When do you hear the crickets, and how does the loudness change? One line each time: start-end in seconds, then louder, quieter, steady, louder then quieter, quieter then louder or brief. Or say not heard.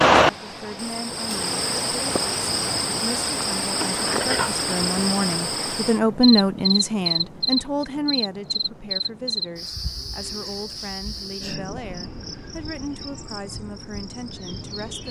0.0-15.0 quieter.